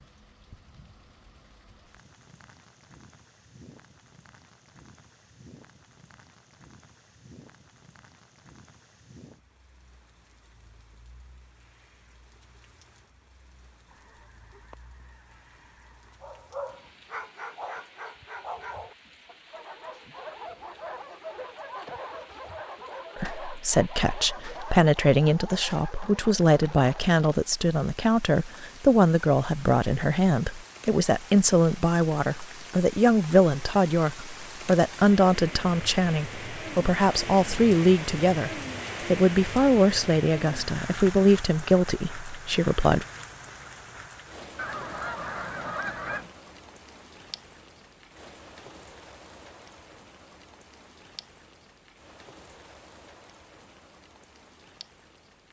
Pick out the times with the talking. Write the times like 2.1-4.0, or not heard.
23.1-43.0.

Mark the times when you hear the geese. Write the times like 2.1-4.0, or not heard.
13.9-16.2, 44.5-46.3.